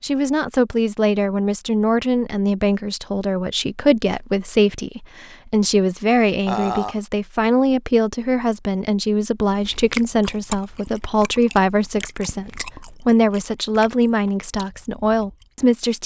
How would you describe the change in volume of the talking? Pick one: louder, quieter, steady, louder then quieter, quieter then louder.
steady.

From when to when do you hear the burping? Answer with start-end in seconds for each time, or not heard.
6.5-7.0.